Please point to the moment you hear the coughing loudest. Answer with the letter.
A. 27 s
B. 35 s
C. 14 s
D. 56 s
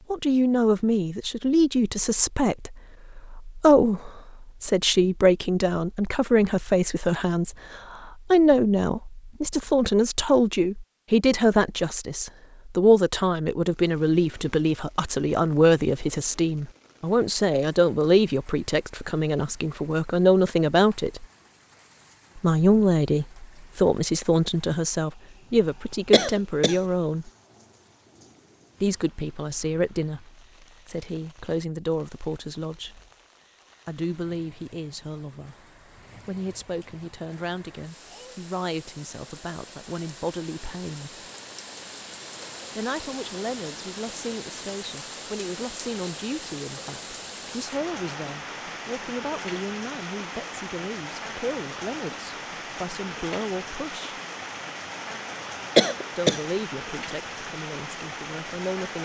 D.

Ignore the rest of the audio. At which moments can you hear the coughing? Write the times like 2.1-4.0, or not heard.
26.1-26.8, 55.8-56.4.